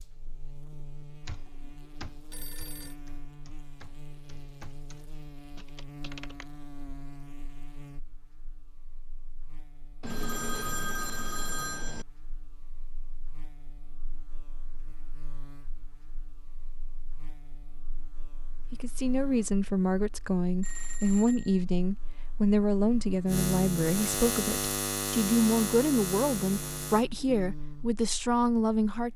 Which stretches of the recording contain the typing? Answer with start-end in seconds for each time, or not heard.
1.2-6.5.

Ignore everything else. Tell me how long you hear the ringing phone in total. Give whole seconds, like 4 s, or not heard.
4 s.